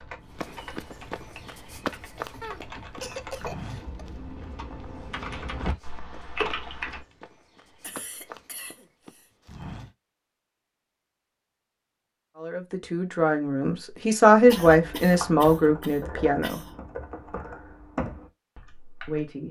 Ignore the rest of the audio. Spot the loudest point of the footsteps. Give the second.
2 s.